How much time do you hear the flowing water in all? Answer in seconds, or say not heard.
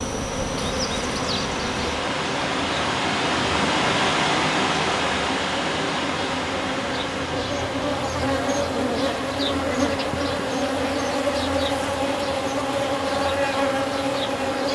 15 s.